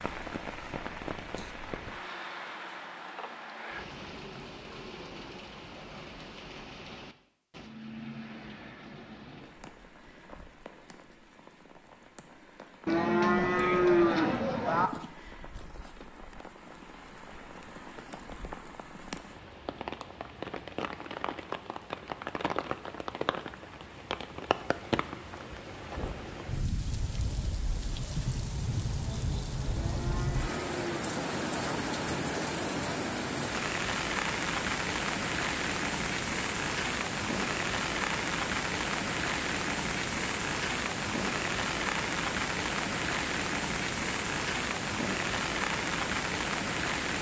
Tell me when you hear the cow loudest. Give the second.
14 s.